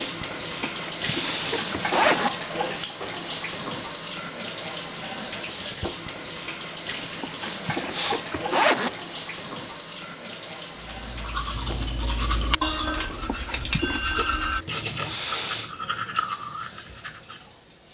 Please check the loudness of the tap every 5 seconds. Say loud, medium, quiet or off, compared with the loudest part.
loud, loud, medium, quiet.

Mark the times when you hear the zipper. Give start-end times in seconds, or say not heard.
0.5-2.3, 6.9-8.9, 12.9-14.3.